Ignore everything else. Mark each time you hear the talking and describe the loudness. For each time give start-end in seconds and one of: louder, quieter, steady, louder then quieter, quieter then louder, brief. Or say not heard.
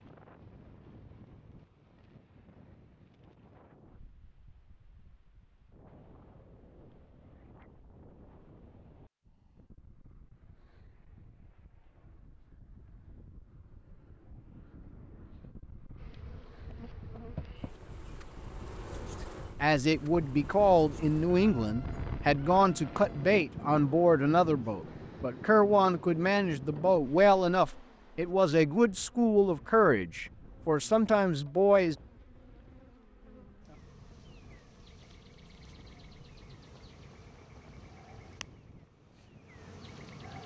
19.6-31.9 steady.